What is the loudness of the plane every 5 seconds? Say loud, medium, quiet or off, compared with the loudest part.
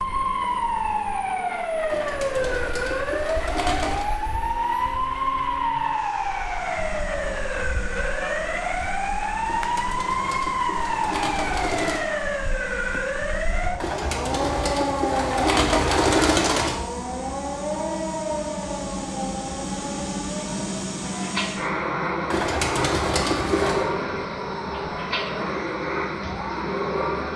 quiet, quiet, quiet, medium, loud, loud.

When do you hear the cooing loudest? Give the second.
16 s.